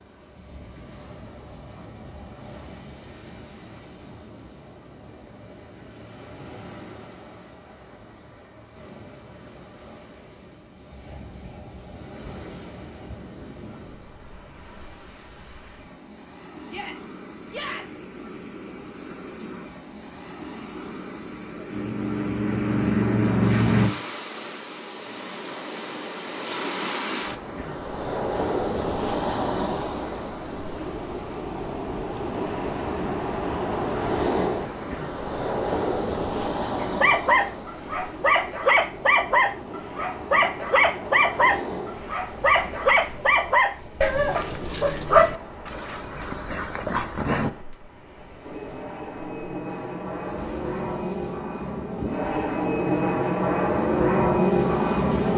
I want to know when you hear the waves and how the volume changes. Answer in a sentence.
The waves can be heard from 0.0 to 55.3 s, getting louder then quieter.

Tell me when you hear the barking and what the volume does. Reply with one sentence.
You can hear the barking from 36.8 to 47.5 s, at a steady volume.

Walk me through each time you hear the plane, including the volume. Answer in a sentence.
The plane can be heard briefly from 21.7 to 23.9 s; and from 48.4 to 55.3 s, getting louder.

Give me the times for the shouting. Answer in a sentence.
The shouting can be heard from 16.6 to 18.0 s.